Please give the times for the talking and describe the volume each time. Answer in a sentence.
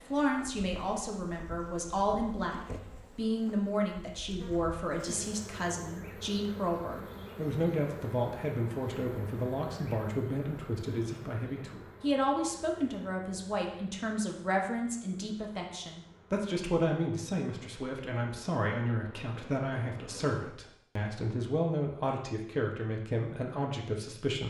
You can hear the talking from 0.1 to 24.4 s, at a steady volume.